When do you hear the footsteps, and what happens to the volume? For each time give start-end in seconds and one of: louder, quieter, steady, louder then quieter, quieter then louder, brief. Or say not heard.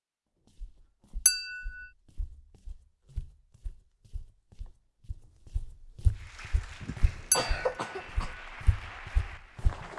0.6-9.9 louder.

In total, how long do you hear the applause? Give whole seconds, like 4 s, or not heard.
4 s.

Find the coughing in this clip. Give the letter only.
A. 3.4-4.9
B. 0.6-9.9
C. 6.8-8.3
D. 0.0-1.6
C.